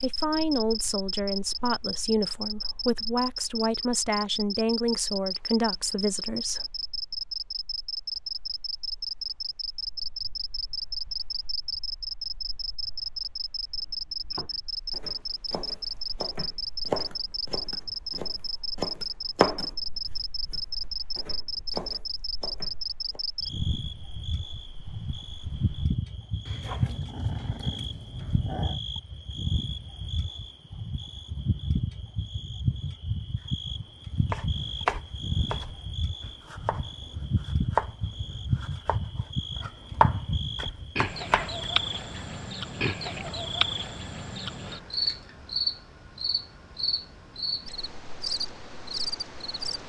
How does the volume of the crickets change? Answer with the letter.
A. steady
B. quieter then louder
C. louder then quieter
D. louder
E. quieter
A.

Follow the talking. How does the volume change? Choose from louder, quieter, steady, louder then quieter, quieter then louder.
steady.